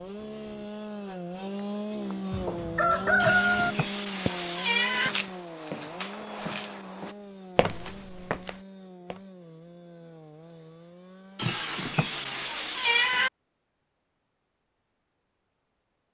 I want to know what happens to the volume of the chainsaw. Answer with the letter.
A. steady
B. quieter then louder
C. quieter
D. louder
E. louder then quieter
C.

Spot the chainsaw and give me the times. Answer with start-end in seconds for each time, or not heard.
0.0-12.5.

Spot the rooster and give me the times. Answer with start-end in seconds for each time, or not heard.
2.3-3.8.